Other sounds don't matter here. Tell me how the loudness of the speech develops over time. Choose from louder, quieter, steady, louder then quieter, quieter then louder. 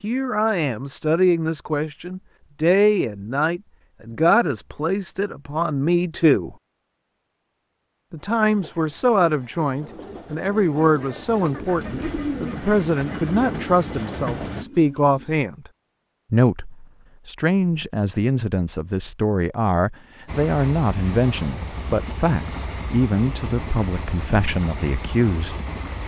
steady.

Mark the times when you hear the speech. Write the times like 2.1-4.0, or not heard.
0.0-6.5, 8.1-15.7, 16.3-25.6.